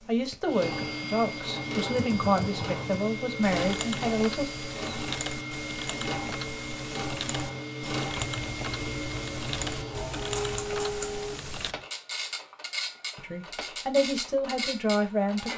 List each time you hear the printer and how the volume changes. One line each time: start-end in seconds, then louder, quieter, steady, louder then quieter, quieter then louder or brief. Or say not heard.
0.0-15.5 steady.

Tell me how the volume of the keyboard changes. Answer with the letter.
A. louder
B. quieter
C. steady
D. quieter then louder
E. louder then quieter
C.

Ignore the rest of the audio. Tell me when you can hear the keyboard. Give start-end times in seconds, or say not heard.
1.9-11.8.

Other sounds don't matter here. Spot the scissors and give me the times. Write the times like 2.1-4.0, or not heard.
8.2-10.8.